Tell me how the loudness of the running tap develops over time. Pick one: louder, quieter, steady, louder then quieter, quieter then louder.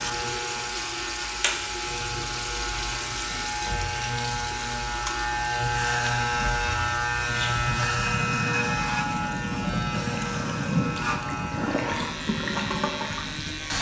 quieter then louder.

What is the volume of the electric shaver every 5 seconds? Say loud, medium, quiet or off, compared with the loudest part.
medium, loud, medium.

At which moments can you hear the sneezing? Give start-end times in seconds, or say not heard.
not heard.